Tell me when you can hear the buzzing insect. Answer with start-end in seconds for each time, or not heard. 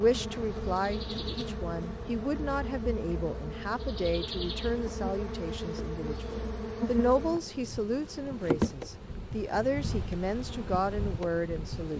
0.0-11.9.